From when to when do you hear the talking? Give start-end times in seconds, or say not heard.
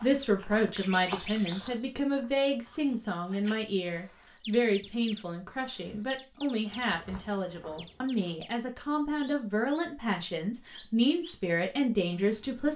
0.0-12.7.